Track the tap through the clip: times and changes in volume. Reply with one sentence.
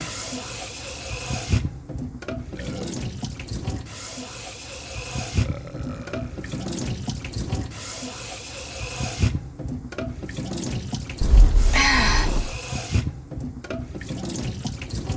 You can hear the tap from 0.0 to 15.1 s, at a steady volume.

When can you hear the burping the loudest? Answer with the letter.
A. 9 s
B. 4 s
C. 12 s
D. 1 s
C.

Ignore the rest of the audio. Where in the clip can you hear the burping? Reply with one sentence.
You can hear the burping from 2.5 to 3.0 s, from 5.3 to 6.7 s and from 11.2 to 12.6 s.